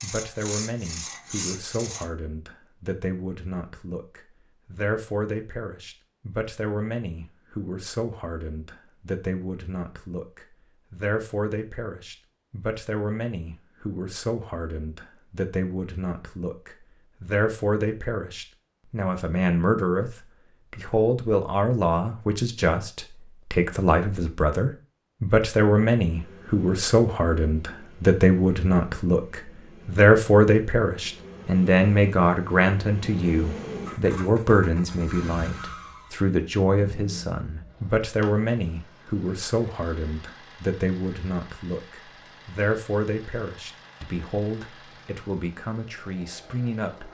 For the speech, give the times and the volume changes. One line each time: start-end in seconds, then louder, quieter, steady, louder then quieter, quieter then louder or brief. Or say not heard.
0.0-47.1 louder then quieter.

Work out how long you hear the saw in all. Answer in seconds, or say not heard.
2 s.